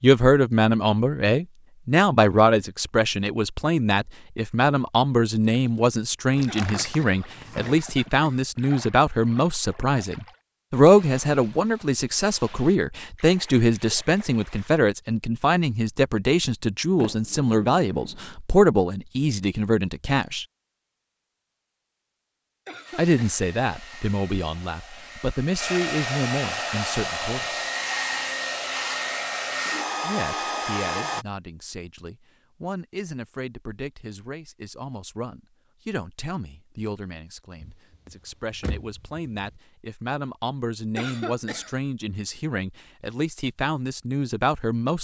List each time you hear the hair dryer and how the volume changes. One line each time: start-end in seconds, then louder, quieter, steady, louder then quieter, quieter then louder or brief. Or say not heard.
22.9-31.2 louder.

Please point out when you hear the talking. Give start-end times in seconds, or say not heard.
0.0-20.4, 22.9-27.6, 30.0-44.9.